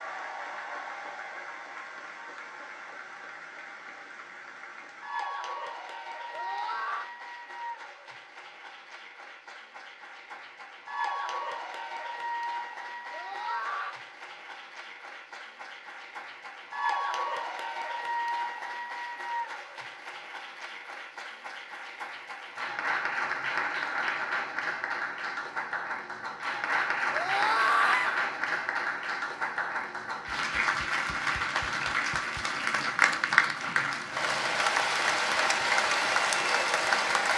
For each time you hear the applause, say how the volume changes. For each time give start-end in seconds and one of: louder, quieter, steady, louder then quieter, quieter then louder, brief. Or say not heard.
0.0-37.3 louder.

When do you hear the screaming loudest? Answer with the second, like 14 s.
28 s.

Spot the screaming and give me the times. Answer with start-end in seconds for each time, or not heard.
6.3-7.1, 13.1-13.9, 27.1-28.2.